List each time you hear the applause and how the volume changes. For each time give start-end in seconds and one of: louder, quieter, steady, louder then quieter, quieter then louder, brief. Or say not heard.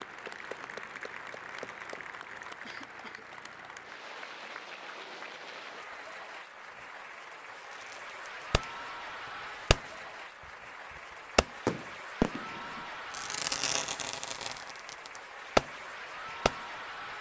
0.0-17.1 steady.